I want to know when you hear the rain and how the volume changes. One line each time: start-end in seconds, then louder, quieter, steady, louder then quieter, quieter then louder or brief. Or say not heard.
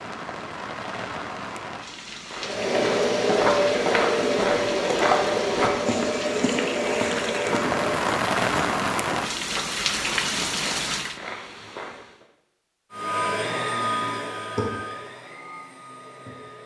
0.0-11.2 louder.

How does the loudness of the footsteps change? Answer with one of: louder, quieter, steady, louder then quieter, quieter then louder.
quieter.